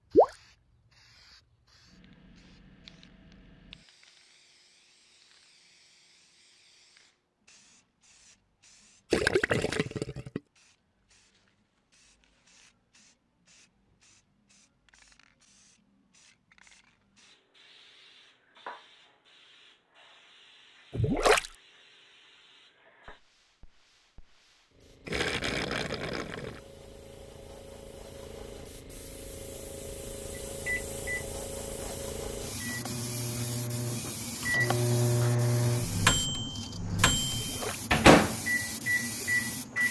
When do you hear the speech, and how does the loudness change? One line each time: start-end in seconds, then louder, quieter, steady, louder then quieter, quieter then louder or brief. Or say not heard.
not heard.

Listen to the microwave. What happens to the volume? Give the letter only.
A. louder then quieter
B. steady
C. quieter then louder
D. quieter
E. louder
E.